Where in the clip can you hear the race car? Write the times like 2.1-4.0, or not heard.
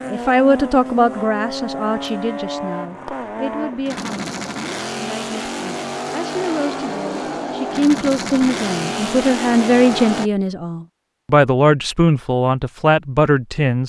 0.0-10.3.